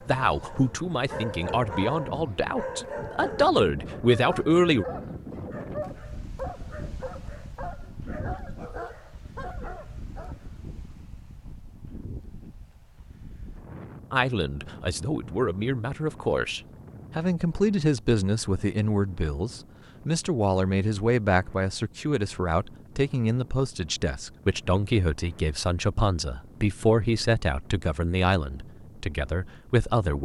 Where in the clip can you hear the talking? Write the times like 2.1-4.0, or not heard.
0.1-4.8, 14.1-30.2.